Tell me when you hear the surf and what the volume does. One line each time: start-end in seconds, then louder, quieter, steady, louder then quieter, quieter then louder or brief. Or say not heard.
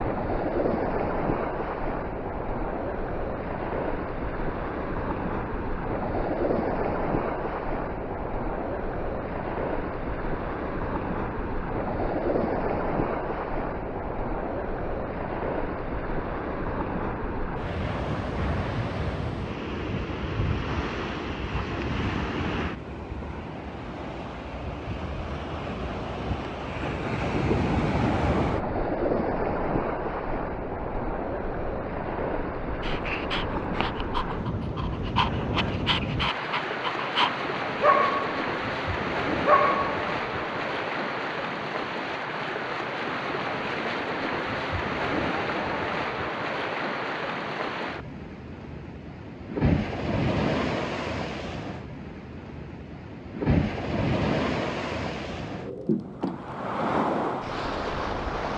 0.0-58.5 steady.